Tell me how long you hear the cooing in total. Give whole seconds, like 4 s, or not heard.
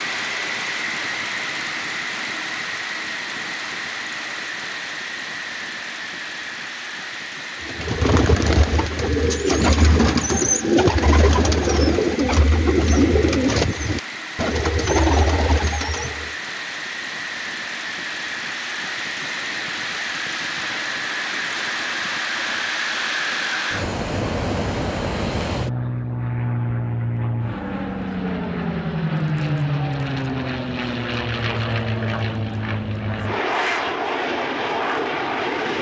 9 s.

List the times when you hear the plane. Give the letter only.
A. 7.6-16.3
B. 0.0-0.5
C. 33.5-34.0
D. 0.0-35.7
D.